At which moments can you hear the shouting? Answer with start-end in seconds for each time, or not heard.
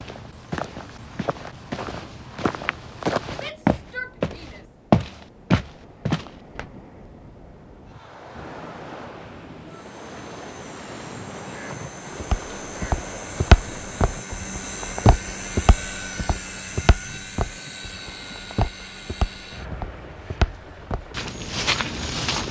3.4-4.7.